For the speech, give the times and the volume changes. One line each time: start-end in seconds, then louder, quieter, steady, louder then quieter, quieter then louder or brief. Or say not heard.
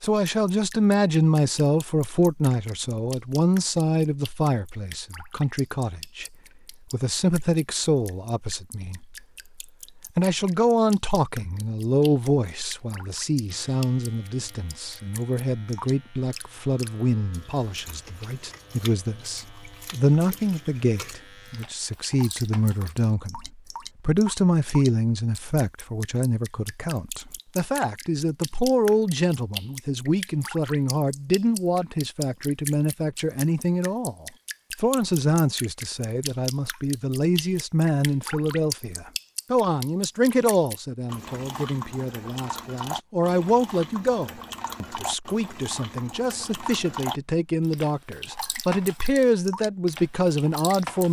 0.0-6.2 quieter
6.9-9.2 brief
10.2-51.0 steady.